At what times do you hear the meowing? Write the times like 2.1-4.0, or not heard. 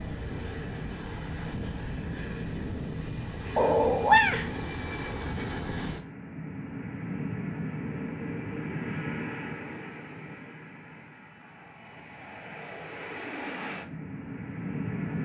3.5-4.5.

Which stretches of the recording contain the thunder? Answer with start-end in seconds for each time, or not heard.
not heard.